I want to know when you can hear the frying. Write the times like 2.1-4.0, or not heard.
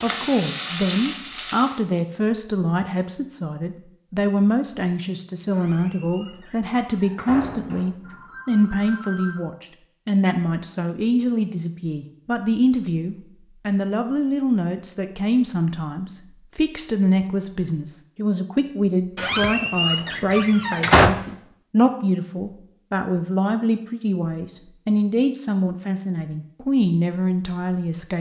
0.0-1.8.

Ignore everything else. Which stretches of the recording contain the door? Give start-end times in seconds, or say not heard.
5.5-7.9, 19.1-21.1.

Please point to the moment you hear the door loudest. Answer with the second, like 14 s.
21 s.